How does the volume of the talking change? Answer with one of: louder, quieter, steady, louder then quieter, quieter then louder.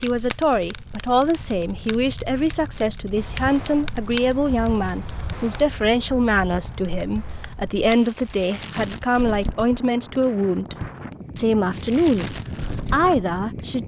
steady.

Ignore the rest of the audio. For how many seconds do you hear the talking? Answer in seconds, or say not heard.
14 s.